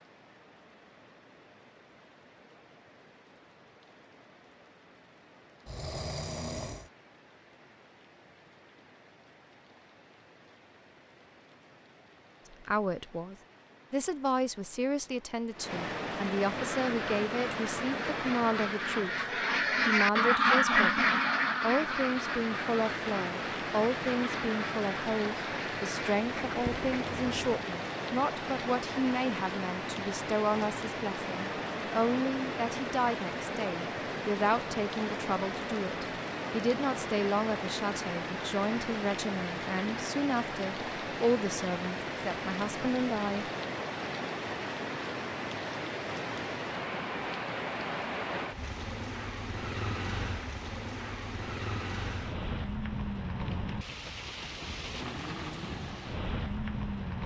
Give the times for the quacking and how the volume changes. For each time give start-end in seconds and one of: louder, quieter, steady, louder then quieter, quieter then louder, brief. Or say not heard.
16.6-27.6 louder then quieter.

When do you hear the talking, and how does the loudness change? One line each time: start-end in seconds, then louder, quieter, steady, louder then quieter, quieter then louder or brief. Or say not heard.
12.5-43.5 steady.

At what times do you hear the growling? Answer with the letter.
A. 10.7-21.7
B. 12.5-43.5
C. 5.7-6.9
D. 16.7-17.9
C.